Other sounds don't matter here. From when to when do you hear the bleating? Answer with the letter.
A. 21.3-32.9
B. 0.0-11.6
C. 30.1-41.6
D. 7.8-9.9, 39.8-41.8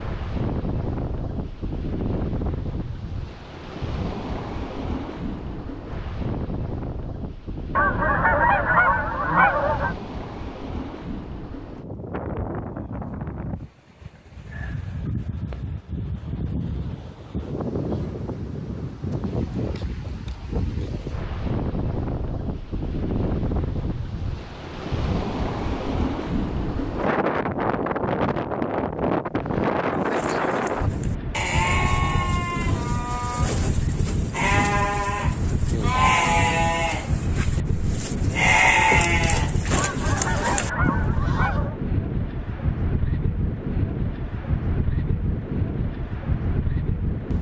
C.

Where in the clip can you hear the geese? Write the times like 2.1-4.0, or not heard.
7.8-9.9, 39.8-41.8.